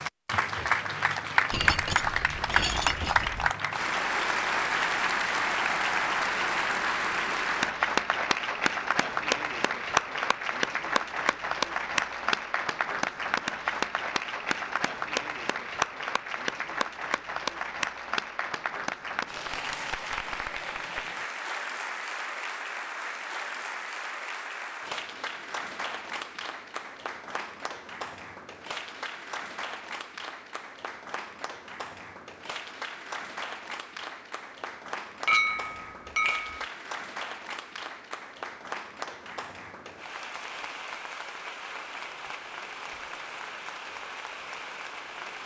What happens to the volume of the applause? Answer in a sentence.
The loudness of the applause goes down.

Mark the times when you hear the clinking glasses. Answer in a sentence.
The clinking glasses can be heard from 1.5 to 3.5 s and from 35.2 to 36.6 s.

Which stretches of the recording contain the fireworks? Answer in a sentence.
You can't hear the fireworks here.